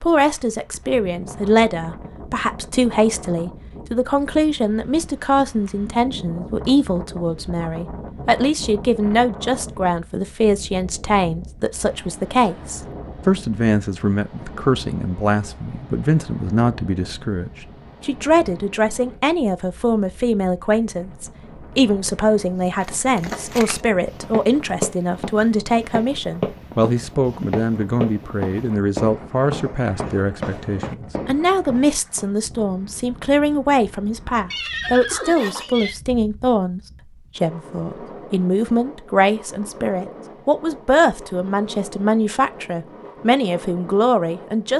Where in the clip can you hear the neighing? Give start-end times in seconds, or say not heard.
34.5-36.0.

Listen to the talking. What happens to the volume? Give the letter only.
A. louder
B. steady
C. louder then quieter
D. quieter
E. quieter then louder
B.